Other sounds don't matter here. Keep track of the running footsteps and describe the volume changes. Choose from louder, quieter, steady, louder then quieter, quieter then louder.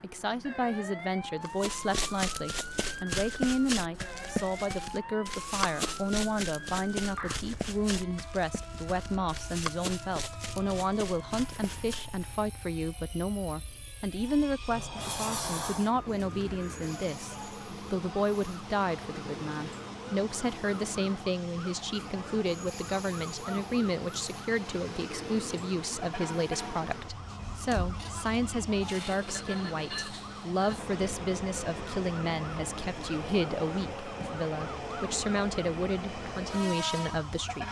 quieter.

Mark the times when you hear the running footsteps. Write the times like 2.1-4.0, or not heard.
1.4-12.2.